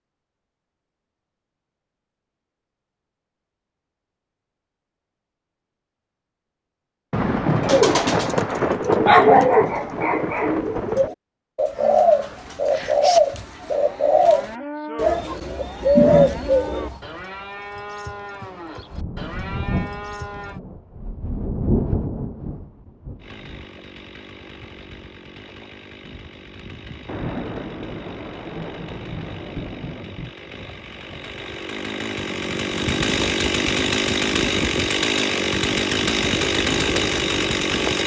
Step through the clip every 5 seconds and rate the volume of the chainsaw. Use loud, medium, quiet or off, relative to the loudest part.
off, off, off, off, quiet, quiet, loud, loud.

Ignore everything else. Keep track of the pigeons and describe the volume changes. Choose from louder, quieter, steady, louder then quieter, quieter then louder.
quieter then louder.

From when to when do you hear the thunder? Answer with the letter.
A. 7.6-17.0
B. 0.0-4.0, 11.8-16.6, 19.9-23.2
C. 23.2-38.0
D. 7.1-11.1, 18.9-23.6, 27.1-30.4
D.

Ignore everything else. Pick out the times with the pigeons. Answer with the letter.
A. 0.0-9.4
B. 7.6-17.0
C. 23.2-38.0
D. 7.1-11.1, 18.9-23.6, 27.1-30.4
B.